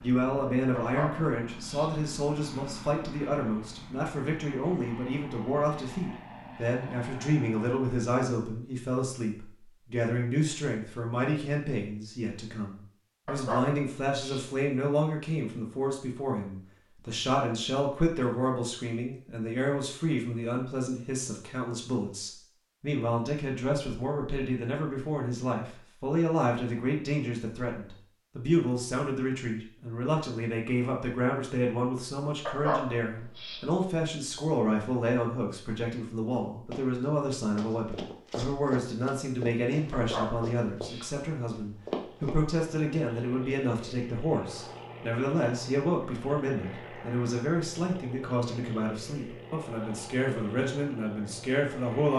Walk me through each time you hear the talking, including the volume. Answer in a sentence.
You can hear the talking from 0.0 to 52.1 s, at a steady volume.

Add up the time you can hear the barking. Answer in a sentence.
You can hear the barking for 5 seconds altogether.